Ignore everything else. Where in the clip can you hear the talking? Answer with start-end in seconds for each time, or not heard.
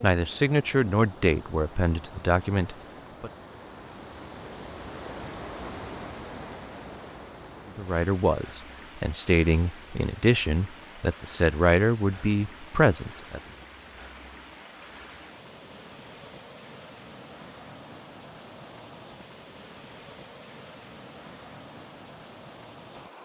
0.0-3.3, 7.7-13.4.